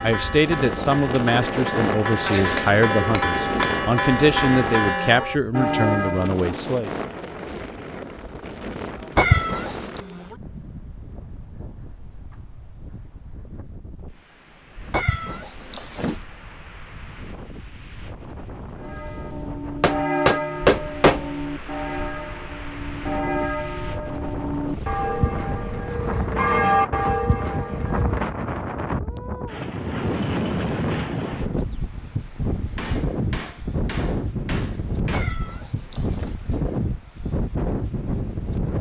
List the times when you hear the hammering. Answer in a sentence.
You can hear the hammering from 2.2 to 3.8 s, from 19.8 to 21.3 s and from 32.8 to 35.3 s.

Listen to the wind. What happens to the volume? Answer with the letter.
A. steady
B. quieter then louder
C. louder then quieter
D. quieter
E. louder
B.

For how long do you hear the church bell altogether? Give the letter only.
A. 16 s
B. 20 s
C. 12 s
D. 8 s
A.